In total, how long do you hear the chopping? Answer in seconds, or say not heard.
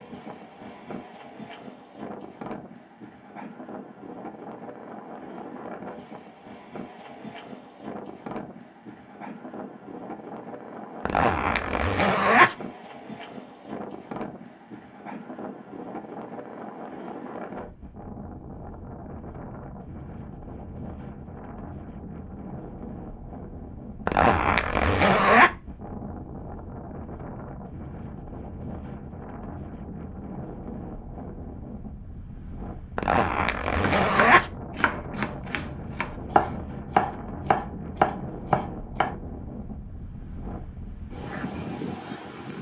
5 s.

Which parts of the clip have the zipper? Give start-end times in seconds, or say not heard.
11.1-12.6, 24.1-25.5, 33.0-34.5.